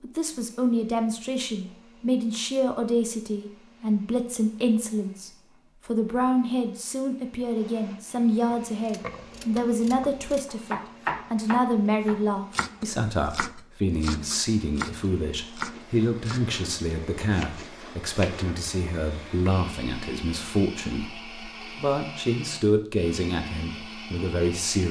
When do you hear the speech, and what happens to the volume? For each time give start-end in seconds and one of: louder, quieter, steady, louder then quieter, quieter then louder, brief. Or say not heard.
0.0-24.8 steady.